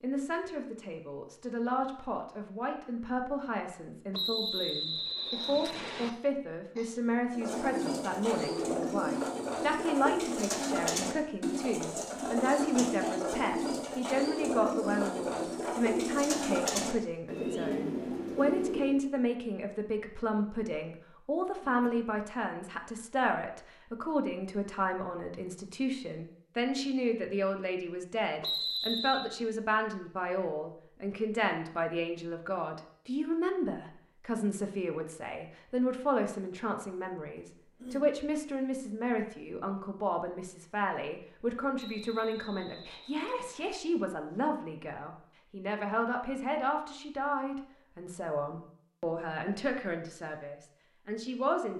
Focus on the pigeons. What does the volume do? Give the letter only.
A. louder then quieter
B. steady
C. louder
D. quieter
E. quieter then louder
B.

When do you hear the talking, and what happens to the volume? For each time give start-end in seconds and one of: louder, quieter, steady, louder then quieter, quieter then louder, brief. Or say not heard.
0.0-51.7 steady.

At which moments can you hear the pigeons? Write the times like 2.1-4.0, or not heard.
7.3-19.0.